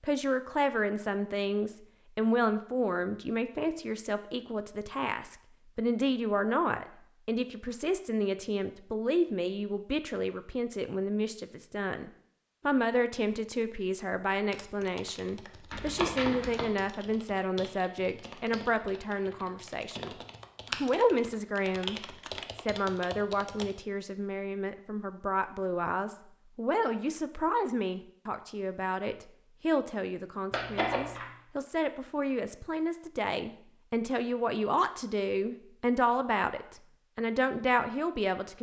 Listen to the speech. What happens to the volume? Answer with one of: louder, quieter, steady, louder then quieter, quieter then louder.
steady.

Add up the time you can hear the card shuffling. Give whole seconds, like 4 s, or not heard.
2 s.